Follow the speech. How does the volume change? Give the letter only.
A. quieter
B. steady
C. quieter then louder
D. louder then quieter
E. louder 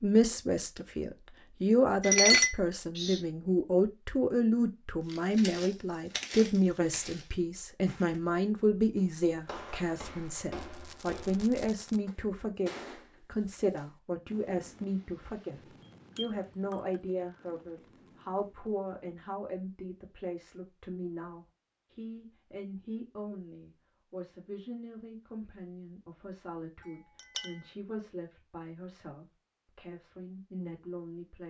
A.